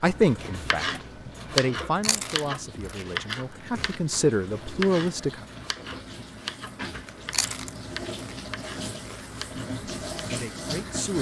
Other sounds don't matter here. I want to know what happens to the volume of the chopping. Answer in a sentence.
The volume of the chopping goes down.